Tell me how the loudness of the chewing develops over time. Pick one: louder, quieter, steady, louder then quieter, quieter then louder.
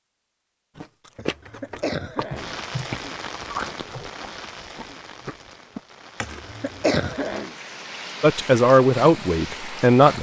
quieter then louder.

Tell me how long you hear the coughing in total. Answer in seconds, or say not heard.
3 s.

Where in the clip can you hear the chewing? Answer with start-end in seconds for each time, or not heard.
0.8-6.5.